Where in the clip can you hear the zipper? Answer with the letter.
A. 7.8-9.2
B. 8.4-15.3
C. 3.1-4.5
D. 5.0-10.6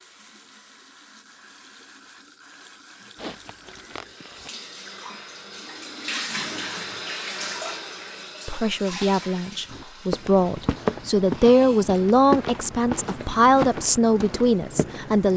C.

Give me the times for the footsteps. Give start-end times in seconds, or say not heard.
9.7-15.3.